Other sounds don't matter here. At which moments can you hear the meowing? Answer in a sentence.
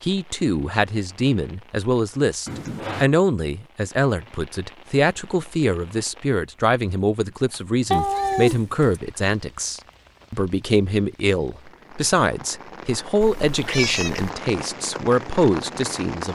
The meowing can be heard from 2.5 to 3.1 s, from 7.9 to 9.0 s and from 13.4 to 14.3 s.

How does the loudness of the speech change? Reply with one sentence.
The loudness of the speech stays about the same.